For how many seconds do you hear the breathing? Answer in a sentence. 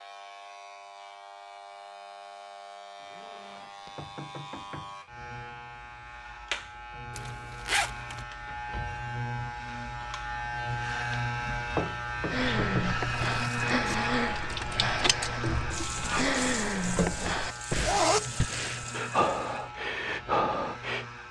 The breathing can be heard for 9 seconds in total.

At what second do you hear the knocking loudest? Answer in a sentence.
The volume of the knocking peaks at 12 seconds.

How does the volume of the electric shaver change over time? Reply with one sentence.
The volume of the electric shaver goes up, then down.